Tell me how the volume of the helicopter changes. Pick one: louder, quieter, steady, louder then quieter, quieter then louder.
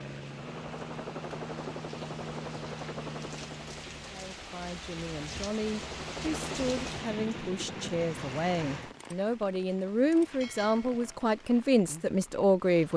quieter then louder.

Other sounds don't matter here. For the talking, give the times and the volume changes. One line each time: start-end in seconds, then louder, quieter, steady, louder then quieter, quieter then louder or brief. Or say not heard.
4.1-12.9 louder.